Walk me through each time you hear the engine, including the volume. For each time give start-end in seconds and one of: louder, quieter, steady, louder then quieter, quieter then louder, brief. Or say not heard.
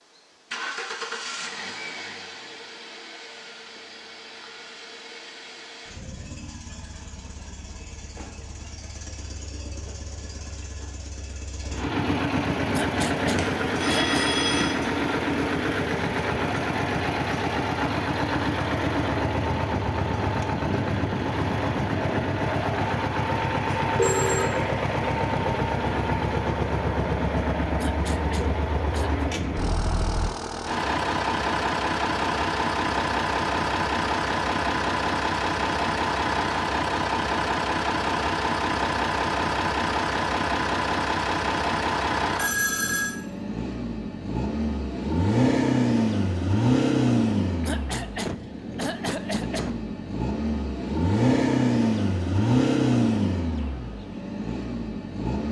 0.0-55.4 louder.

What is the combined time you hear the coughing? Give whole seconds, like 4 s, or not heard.
5 s.